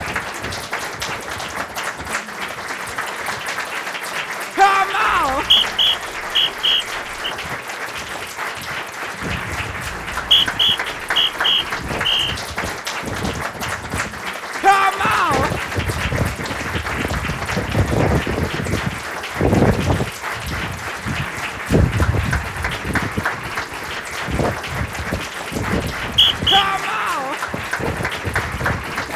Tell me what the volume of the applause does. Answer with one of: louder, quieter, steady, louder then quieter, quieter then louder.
steady.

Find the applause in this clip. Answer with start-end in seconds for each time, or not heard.
0.0-29.1.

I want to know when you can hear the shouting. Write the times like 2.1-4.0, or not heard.
4.5-5.5, 14.6-15.5, 26.5-27.4.